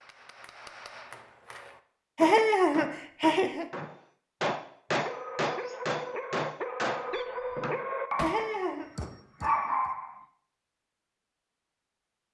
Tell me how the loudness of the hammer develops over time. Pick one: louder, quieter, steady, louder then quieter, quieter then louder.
louder then quieter.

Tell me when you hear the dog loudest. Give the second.
10 s.